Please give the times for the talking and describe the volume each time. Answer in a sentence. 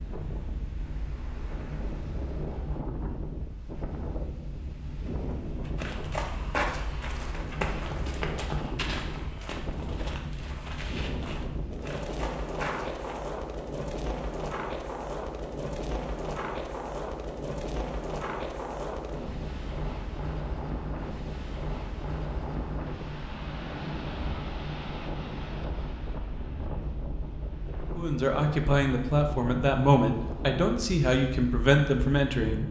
You can hear the talking from 27.9 to 32.6 s, at a steady volume.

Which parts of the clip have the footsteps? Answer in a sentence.
The footsteps can be heard from 5.6 to 13.2 s.